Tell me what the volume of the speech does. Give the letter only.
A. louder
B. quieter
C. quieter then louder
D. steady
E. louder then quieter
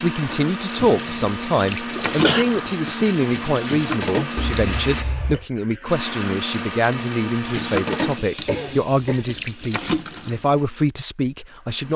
D.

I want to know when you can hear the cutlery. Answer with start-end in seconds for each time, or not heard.
not heard.